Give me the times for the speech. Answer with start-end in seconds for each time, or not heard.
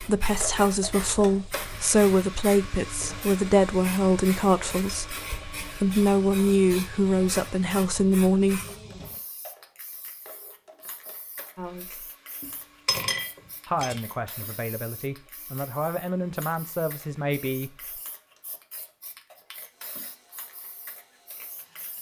0.0-8.6, 11.6-12.1, 13.7-18.0.